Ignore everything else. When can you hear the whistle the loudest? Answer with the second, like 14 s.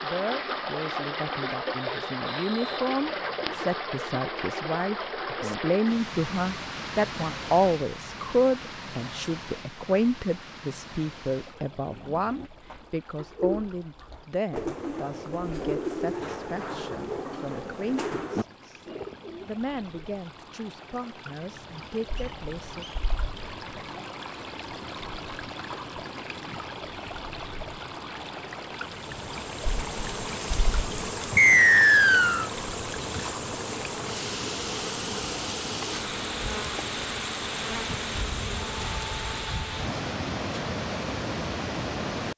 32 s.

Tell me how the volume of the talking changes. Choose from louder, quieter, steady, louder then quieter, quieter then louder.
louder then quieter.